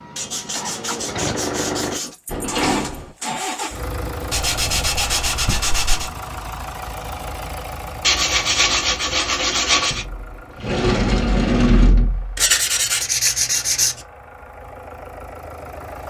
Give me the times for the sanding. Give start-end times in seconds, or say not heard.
0.1-2.1, 4.3-6.1, 8.0-10.1, 12.3-14.1.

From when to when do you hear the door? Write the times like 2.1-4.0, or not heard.
2.2-3.1, 9.9-12.5.